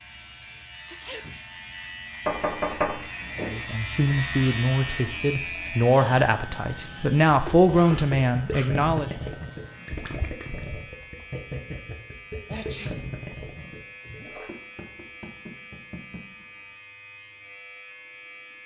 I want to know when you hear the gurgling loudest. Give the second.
9 s.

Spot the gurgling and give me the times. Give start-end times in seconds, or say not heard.
8.2-14.5.